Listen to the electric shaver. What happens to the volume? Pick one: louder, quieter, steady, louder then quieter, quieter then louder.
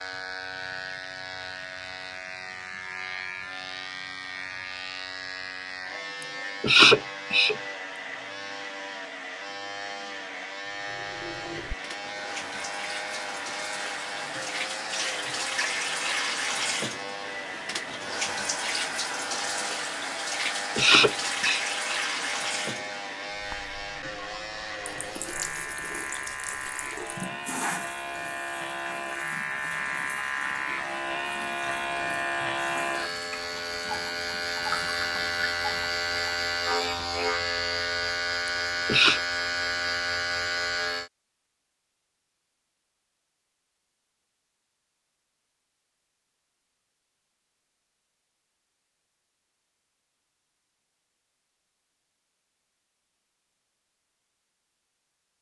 louder.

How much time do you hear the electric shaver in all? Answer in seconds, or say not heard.
41 s.